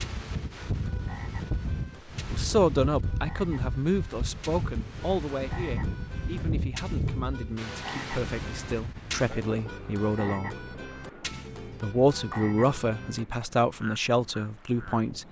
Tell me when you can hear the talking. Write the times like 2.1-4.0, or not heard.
2.2-10.7, 11.8-15.2.